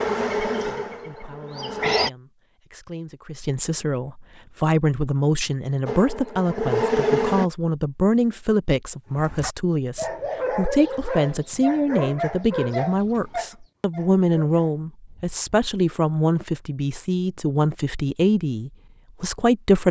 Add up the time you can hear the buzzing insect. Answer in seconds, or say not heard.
4 s.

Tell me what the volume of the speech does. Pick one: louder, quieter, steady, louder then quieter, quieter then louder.
louder.